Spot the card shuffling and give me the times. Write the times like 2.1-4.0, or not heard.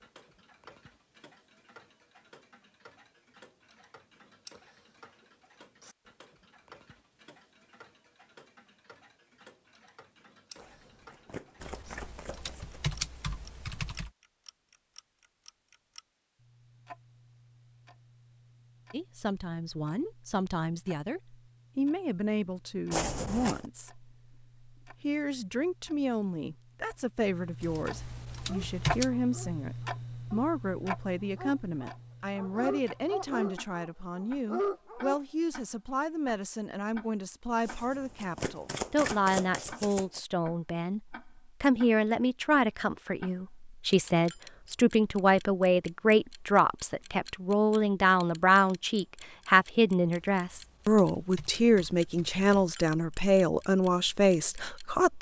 10.6-12.8, 22.9-23.7, 37.6-40.2.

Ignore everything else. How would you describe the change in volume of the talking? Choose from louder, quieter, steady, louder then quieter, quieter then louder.
louder.